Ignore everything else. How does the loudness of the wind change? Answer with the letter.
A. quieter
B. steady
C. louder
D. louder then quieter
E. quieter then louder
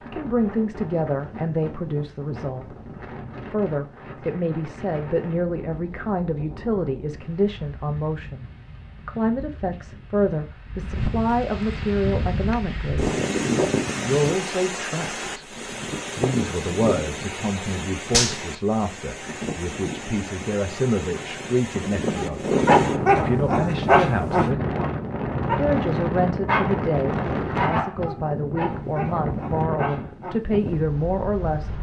C.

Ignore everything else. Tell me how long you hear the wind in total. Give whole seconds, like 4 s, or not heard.
32 s.